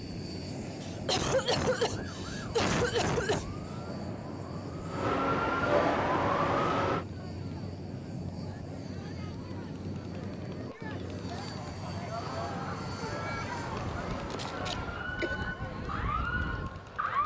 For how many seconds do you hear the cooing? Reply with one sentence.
The cooing can't be heard in this clip.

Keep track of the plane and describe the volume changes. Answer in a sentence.
The loudness of the plane stays about the same.